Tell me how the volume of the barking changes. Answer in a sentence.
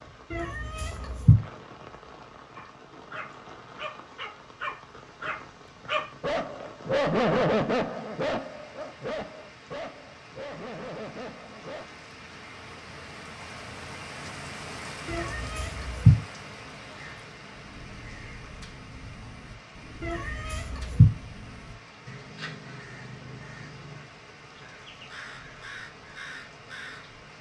The volume of the barking goes up, then down.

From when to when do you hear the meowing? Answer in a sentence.
The meowing can be heard from 0.3 to 1.4 s, from 15.1 to 16.1 s and from 20.0 to 21.1 s.